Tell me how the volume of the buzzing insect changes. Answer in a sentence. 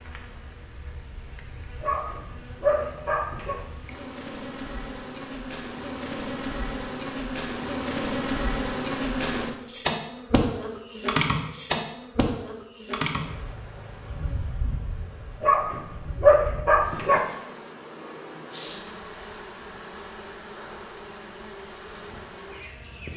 The volume of the buzzing insect goes up, then down.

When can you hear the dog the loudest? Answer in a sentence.
The volume of the dog peaks at 16 seconds.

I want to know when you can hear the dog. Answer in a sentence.
The dog can be heard from 1.8 to 3.5 s and from 15.4 to 17.2 s.